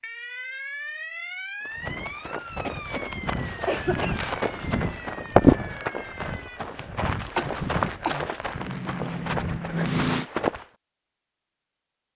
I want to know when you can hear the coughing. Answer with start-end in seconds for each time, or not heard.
2.5-4.2, 7.3-8.9.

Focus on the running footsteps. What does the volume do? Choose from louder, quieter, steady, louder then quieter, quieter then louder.
louder then quieter.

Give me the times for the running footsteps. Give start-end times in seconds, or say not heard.
1.6-10.7.